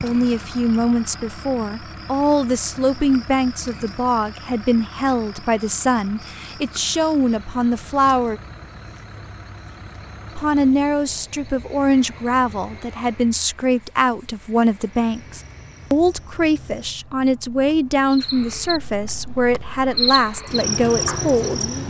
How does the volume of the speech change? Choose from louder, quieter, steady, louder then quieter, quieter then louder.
steady.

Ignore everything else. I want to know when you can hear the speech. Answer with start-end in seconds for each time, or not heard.
0.0-8.4, 10.3-21.7.